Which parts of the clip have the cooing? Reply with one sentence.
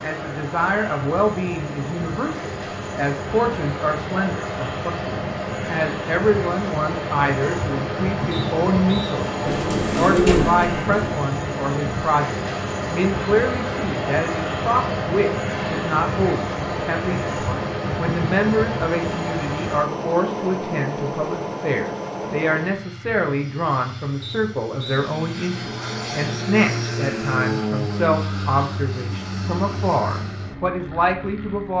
You can hear the cooing from 9.4 to 11.2 s.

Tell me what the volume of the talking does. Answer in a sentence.
The volume of the talking stays about the same.